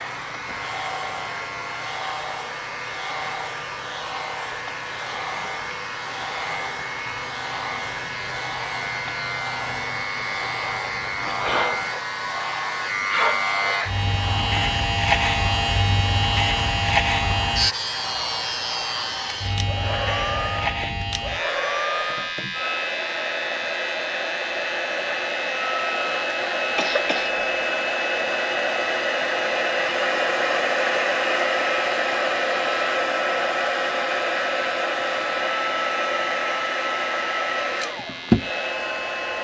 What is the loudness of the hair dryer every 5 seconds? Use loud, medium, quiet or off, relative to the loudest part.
medium, medium, medium, medium, medium, loud, loud, loud.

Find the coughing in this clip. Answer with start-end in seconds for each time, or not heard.
26.8-27.4.